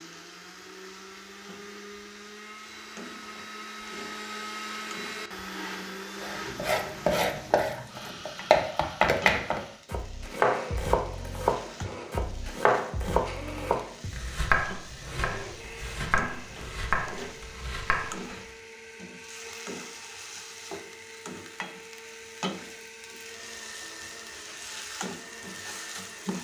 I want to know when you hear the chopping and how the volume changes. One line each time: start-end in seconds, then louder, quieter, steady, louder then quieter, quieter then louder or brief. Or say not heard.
6.2-18.2 quieter.